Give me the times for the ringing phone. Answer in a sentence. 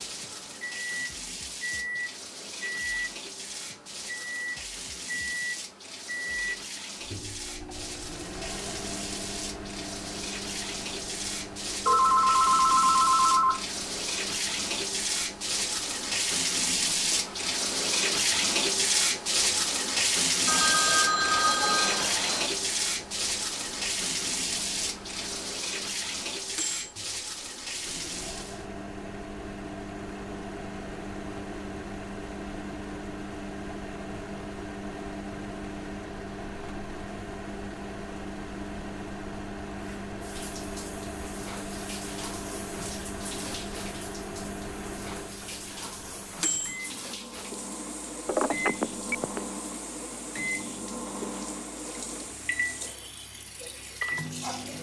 You can hear the ringing phone from 11.8 to 13.7 s, from 20.4 to 22.5 s and from 48.2 to 49.4 s.